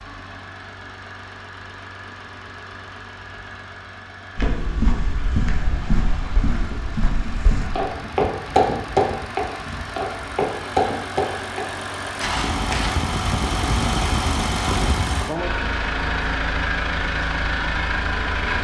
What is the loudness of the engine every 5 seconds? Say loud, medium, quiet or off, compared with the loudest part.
quiet, medium, loud, loud.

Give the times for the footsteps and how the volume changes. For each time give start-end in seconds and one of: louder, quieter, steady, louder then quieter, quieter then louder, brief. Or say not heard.
4.3-13.1 louder then quieter.